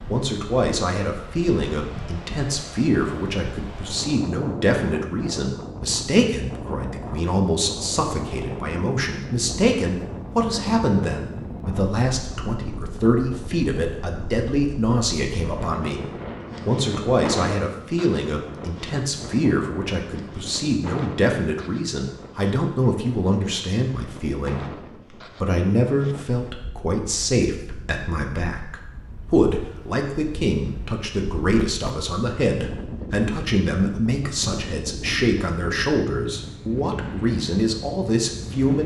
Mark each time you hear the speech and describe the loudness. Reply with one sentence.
You can hear the speech from 0.1 to 38.8 s, at a steady volume.